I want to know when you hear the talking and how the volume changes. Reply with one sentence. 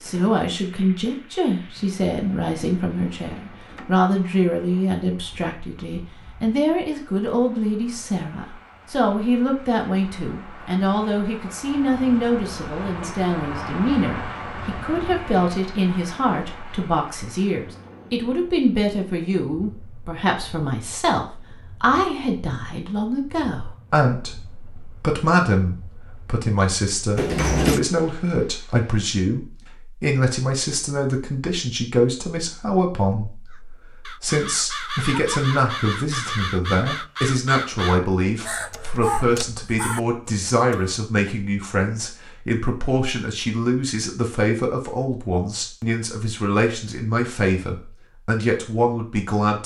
You can hear the talking from 0.0 to 49.6 s, at a steady volume.